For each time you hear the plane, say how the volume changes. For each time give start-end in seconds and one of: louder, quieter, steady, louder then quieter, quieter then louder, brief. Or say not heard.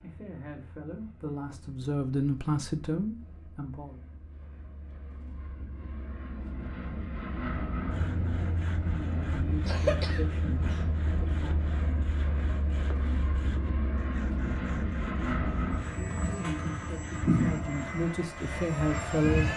0.0-19.5 louder.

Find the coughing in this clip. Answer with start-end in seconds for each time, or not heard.
9.7-11.2.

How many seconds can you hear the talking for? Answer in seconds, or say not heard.
10 s.